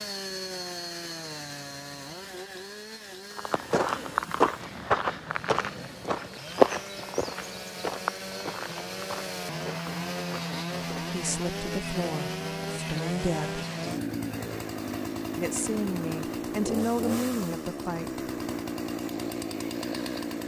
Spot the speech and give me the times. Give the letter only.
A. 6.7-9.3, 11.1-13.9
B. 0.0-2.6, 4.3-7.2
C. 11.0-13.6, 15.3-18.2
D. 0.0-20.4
C.